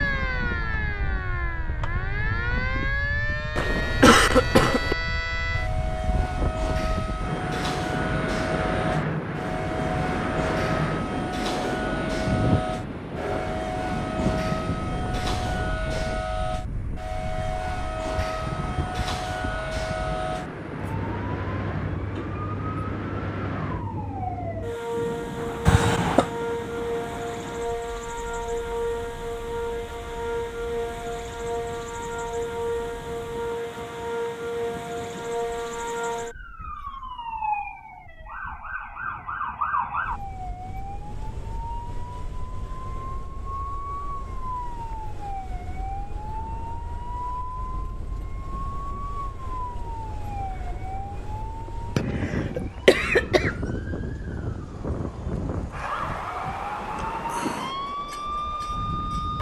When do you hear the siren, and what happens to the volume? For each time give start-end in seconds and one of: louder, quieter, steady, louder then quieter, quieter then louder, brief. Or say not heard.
0.0-59.3 steady.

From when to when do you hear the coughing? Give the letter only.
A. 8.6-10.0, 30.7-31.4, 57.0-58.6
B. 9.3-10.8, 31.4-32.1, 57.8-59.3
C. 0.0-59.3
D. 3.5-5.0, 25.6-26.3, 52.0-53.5
D.